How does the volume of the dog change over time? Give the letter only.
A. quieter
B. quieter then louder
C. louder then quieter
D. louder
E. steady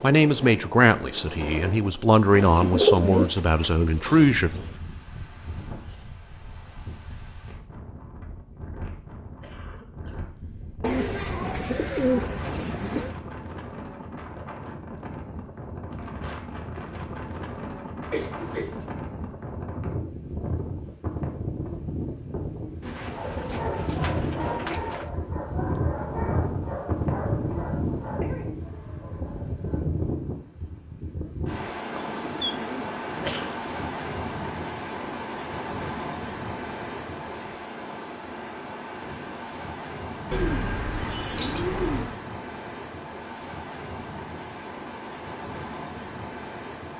A.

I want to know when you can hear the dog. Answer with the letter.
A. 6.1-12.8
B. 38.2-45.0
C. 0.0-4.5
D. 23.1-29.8
D.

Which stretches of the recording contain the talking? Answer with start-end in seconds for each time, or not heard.
0.0-4.5.